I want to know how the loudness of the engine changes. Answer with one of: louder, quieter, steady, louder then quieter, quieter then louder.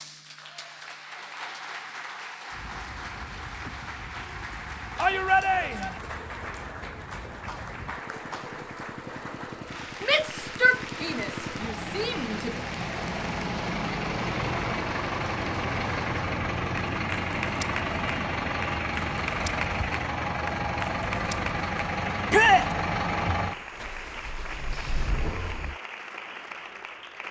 louder.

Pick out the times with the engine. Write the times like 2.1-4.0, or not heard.
2.5-25.8.